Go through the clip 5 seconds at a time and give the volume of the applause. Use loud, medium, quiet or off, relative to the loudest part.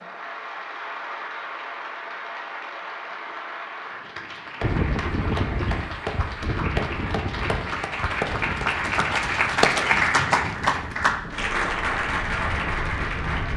medium, loud, loud.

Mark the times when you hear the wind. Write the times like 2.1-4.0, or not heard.
4.6-13.5.